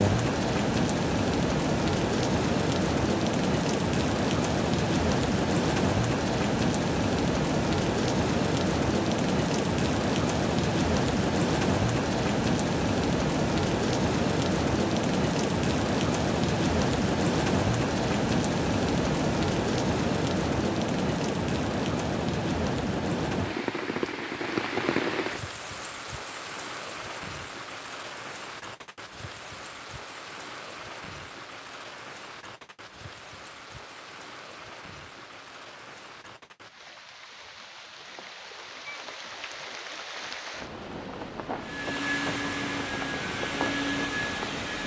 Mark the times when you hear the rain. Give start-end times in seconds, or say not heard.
0.0-44.8.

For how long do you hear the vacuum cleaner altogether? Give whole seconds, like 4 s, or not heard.
3 s.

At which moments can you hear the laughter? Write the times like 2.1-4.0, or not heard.
not heard.